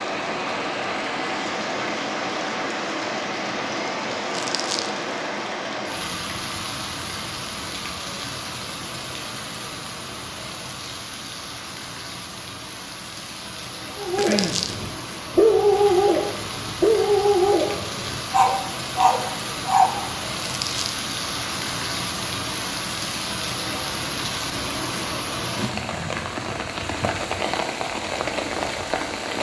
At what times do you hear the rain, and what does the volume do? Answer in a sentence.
The rain can be heard from 0.0 to 29.3 s, getting quieter then louder.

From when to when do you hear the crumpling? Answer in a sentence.
The crumpling can be heard from 4.3 to 4.9 s, from 14.2 to 14.8 s and from 20.4 to 21.0 s.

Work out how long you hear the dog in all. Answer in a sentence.
The dog can be heard for 6 seconds in total.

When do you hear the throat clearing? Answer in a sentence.
The throat clearing can be heard from 14.2 to 14.6 s.